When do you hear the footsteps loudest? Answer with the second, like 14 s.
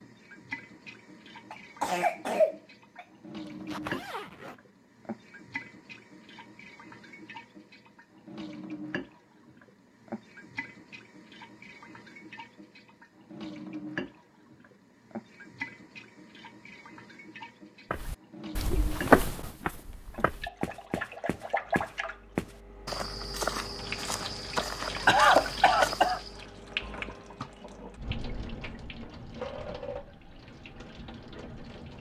19 s.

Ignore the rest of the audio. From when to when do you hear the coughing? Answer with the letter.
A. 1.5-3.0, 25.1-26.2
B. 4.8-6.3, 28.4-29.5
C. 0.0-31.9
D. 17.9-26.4
A.